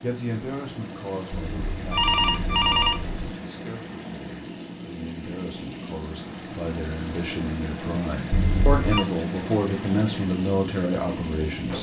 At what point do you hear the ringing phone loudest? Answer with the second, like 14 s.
3 s.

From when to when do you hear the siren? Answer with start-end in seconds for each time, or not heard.
not heard.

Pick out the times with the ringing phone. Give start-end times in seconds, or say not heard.
1.3-3.2, 8.3-9.1.